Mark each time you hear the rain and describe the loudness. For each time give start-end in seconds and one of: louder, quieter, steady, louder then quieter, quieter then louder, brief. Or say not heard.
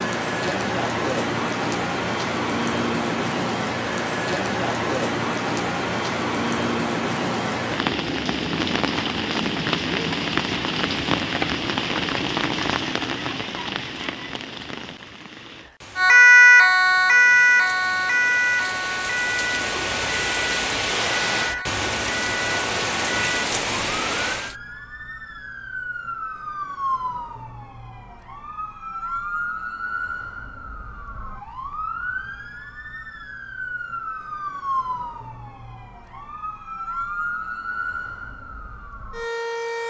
0.0-24.6 quieter then louder.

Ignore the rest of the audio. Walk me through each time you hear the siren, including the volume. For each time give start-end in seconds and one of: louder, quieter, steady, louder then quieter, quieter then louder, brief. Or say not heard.
15.9-39.8 quieter.